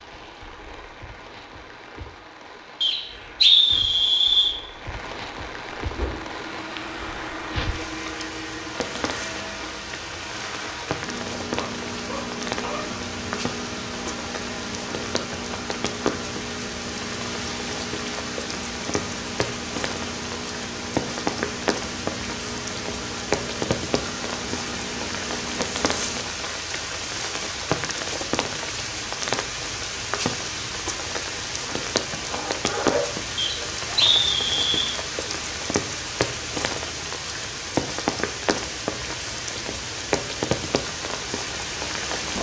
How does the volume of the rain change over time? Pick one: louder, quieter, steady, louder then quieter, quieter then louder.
louder.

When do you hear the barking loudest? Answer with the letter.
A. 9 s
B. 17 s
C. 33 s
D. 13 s
C.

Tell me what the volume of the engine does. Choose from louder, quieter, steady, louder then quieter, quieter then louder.
steady.